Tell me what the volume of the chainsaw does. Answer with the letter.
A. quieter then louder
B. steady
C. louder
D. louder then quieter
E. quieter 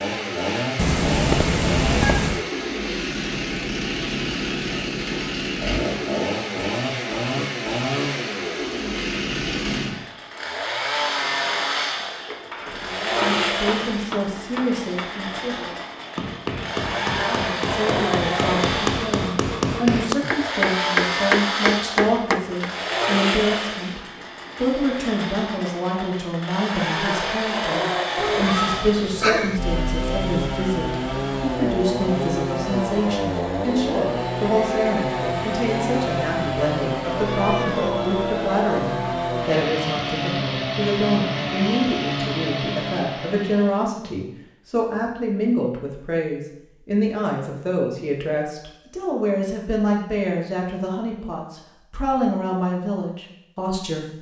B.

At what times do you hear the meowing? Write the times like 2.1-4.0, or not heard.
0.8-2.5, 28.1-29.6, 37.1-38.0.